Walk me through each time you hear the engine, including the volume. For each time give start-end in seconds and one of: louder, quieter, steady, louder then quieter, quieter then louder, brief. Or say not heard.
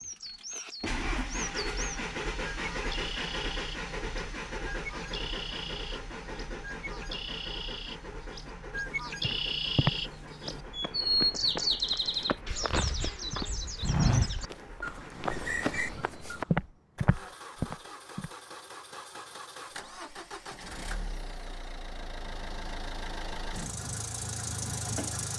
0.0-25.3 quieter then louder.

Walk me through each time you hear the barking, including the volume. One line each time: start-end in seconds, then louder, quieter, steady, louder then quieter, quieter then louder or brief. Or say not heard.
not heard.